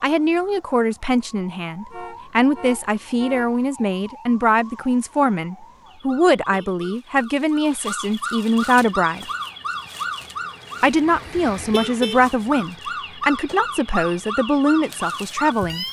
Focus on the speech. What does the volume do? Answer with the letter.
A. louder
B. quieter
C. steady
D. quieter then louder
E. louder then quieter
C.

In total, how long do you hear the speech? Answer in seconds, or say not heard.
14 s.